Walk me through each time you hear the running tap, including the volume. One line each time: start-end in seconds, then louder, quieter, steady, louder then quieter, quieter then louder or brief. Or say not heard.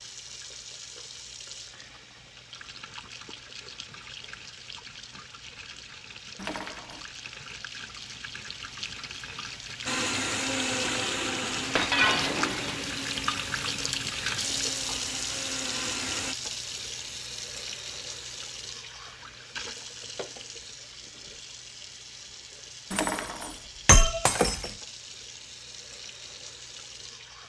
0.0-27.4 louder then quieter.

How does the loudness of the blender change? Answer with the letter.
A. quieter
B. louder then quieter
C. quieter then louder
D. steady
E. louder
C.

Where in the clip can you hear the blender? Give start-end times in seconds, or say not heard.
9.8-16.4.